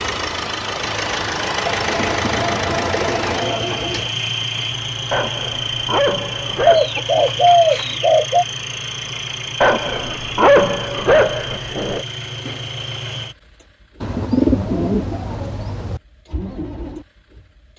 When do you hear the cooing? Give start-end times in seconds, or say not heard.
1.6-4.1, 6.7-8.4, 14.0-16.0.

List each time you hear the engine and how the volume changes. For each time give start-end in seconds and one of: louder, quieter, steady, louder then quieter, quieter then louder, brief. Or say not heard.
0.0-17.7 quieter.